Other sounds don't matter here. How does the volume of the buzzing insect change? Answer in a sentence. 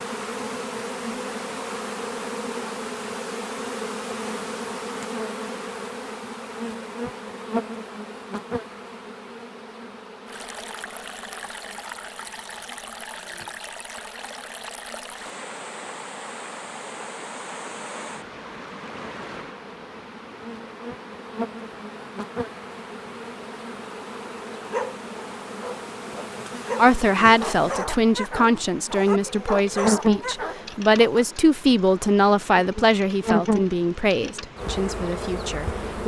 The volume of the buzzing insect goes down, then up.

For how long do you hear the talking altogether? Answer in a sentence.
The talking can be heard for 9 seconds in total.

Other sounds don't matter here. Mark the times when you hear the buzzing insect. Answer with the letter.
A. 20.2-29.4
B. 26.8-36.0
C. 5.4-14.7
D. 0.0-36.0
D.